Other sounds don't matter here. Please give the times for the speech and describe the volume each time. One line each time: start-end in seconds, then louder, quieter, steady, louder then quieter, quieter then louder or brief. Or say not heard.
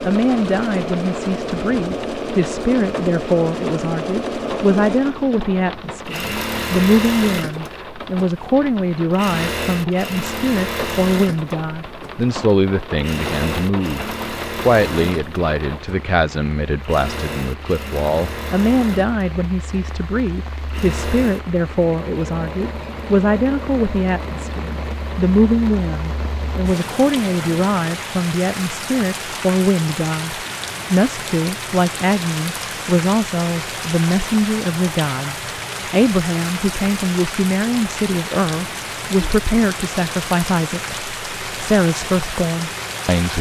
0.0-43.3 steady.